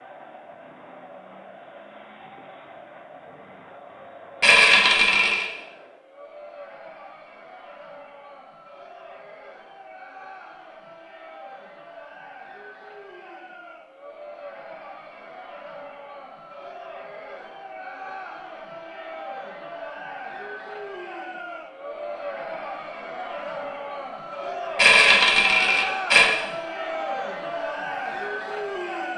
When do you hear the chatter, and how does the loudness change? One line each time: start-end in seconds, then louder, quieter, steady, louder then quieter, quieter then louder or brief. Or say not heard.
0.0-29.1 louder.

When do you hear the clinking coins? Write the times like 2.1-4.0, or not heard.
4.4-5.5, 24.8-26.2.